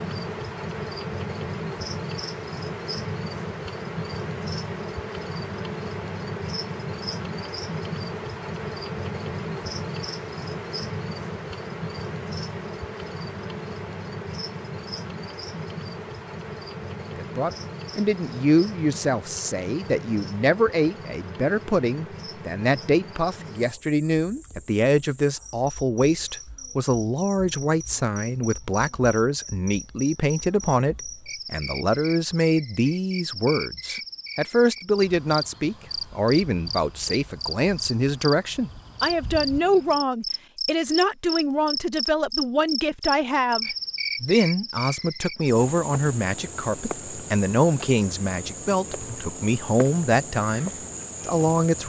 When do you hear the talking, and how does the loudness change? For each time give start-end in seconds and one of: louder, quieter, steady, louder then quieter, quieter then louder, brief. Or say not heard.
17.1-51.8 steady.